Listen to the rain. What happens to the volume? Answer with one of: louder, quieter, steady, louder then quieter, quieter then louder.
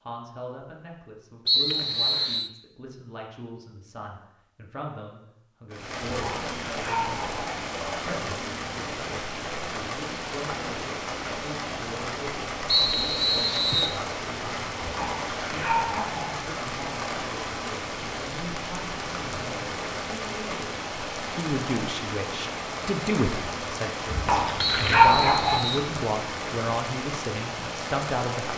steady.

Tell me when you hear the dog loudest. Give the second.
25 s.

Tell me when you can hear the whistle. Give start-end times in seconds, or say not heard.
1.4-2.5, 12.7-14.0, 24.6-25.9.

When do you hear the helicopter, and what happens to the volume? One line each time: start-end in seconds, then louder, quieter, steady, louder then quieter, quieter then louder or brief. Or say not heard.
not heard.